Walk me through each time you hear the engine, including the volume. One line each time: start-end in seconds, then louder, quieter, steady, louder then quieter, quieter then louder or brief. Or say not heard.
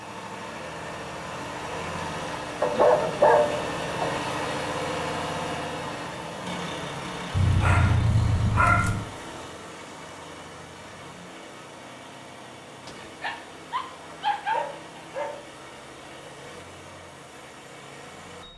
0.0-18.5 quieter.